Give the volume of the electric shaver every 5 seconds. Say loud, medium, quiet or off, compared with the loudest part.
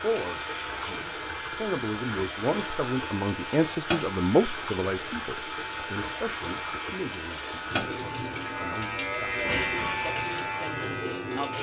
medium, loud, loud.